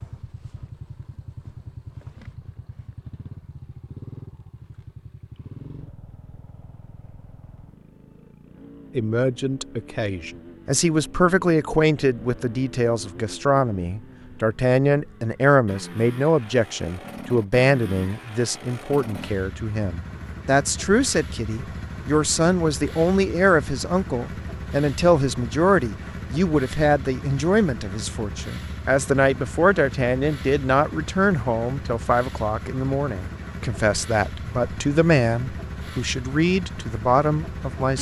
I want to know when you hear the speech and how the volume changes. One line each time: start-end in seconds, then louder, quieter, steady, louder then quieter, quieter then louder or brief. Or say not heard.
8.9-37.9 steady.